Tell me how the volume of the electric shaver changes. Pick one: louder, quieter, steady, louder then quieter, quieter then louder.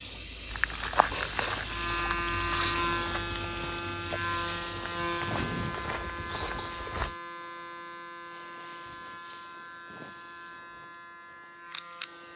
quieter.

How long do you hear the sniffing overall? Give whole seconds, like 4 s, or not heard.
3 s.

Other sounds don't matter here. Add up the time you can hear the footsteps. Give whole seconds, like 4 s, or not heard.
7 s.